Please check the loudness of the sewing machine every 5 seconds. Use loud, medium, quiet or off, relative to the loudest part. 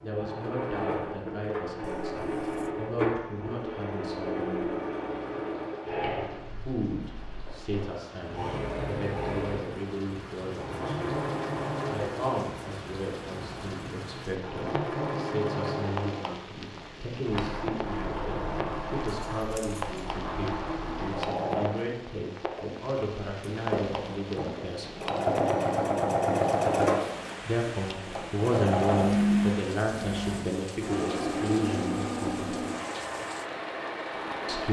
medium, medium, medium, medium, medium, loud, medium.